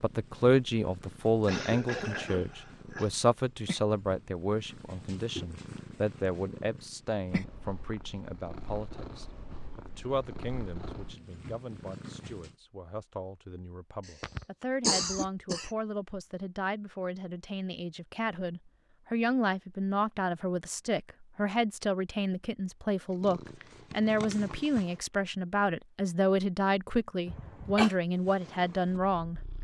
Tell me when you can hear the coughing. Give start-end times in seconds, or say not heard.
1.4-3.1, 14.2-15.7, 27.2-27.9.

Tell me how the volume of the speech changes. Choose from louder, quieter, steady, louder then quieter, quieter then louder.
quieter then louder.